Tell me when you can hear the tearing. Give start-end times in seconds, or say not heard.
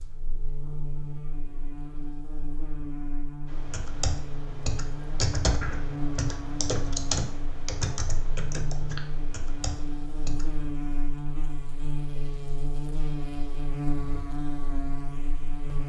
not heard.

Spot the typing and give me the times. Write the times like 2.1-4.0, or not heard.
3.5-10.7.